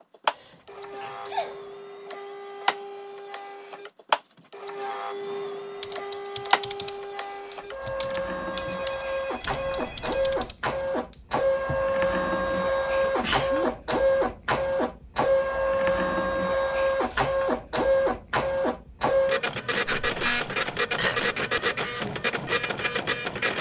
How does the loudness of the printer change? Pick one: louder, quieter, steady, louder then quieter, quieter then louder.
louder.